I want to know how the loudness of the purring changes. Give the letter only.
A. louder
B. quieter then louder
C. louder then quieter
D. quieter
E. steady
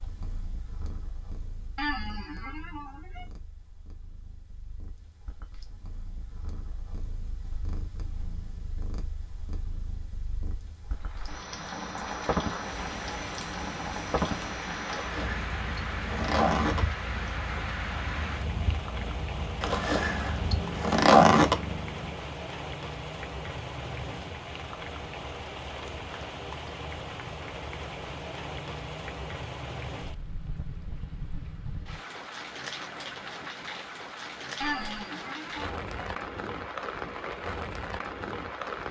A.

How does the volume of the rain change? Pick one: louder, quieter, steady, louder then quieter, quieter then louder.
steady.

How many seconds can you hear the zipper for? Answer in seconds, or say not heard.
4 s.